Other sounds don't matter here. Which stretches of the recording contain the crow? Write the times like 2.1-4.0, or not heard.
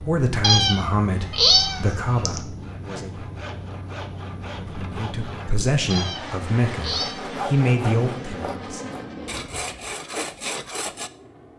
not heard.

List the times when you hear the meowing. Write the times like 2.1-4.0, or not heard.
0.4-2.4, 5.9-7.4.